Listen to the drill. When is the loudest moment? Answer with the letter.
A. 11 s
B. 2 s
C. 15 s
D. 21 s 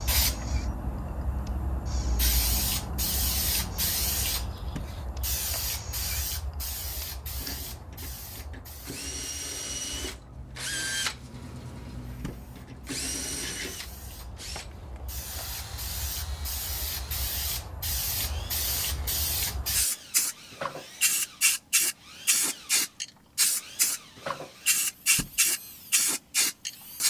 A.